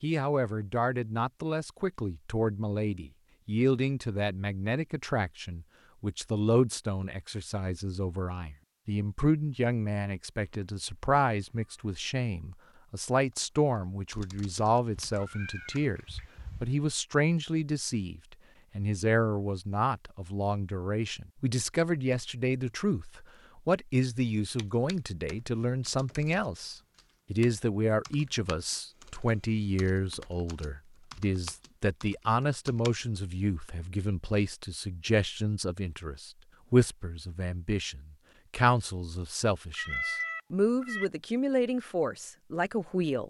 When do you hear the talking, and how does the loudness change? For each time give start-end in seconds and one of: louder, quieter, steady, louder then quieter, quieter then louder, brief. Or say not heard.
0.0-43.2 steady.